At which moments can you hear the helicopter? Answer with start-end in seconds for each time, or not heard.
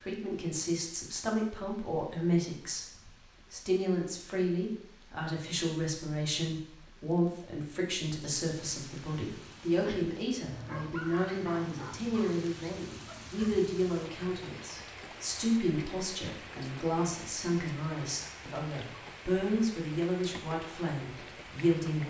not heard.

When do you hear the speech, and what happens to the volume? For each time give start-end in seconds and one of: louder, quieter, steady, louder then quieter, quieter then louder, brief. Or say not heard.
0.0-22.0 steady.